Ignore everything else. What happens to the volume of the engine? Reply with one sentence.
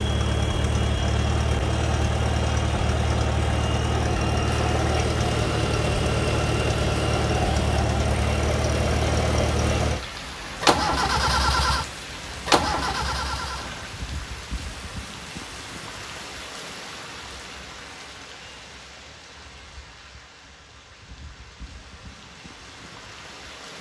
The loudness of the engine stays about the same.